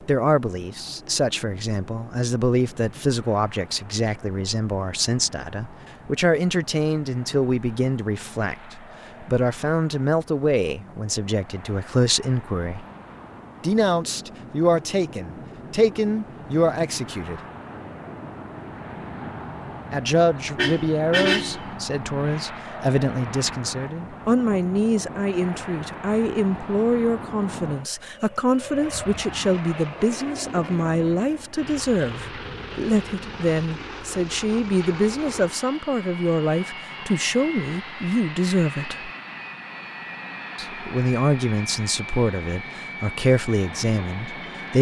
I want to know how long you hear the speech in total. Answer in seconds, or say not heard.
40 s.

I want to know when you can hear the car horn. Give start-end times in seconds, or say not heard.
20.6-21.6.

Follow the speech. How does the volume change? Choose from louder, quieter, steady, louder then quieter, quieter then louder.
steady.